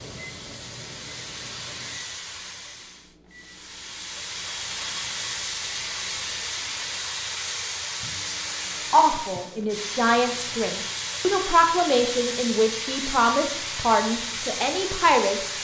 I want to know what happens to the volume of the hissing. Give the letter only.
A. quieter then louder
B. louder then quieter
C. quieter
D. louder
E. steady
D.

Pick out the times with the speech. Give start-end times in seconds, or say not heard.
8.9-15.4.